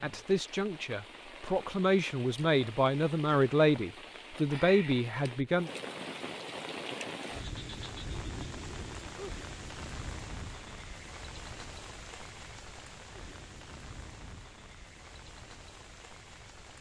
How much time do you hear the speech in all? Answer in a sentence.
You can hear the speech for 6 seconds altogether.